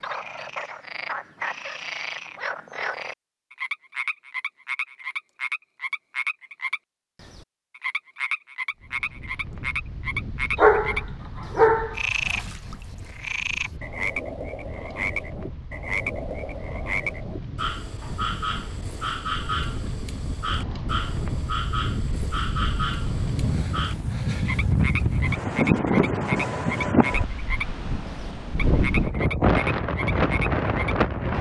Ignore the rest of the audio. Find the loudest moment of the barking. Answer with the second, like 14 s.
11 s.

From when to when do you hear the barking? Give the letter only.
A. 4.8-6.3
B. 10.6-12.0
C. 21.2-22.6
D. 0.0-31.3
B.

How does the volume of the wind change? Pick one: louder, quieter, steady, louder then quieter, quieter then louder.
louder.